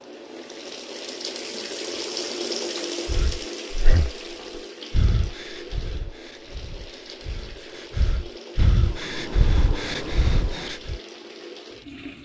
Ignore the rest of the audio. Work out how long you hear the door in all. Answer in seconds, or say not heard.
2 s.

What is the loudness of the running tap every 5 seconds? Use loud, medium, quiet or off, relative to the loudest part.
loud, medium, medium.